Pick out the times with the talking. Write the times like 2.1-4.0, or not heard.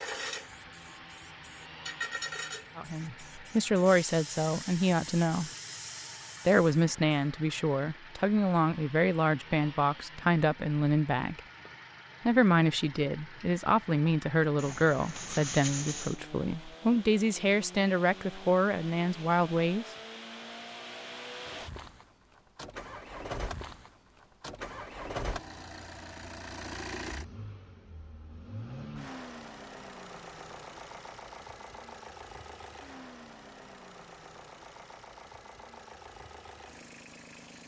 2.8-5.5, 6.5-11.4, 12.2-19.9.